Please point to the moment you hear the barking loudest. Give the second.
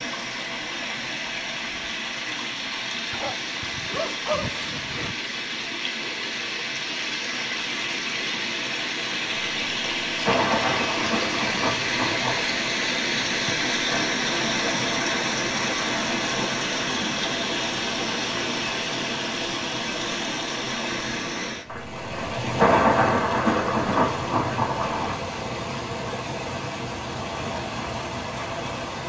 4 s.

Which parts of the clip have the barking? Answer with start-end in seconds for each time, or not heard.
3.1-5.2.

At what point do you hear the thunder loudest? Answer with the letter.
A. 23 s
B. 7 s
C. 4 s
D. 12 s
A.